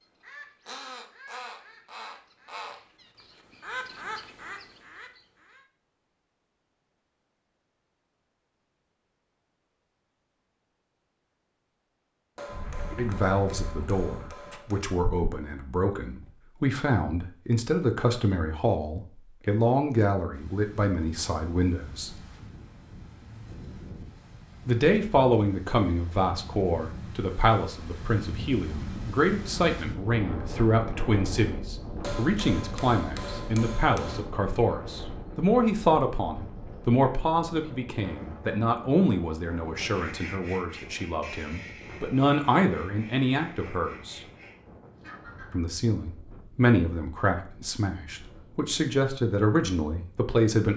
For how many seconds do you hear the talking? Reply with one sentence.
The talking can be heard for 34 seconds in total.